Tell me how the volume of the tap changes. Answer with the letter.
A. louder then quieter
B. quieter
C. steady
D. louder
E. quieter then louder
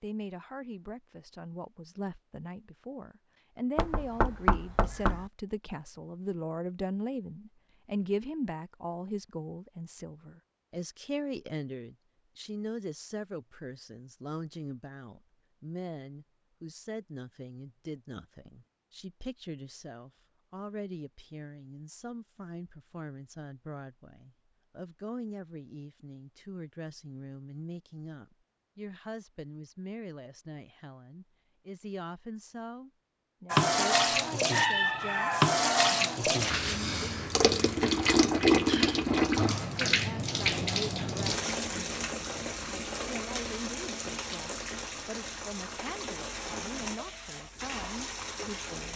B.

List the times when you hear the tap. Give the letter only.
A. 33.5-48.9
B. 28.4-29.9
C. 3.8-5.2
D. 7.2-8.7
A.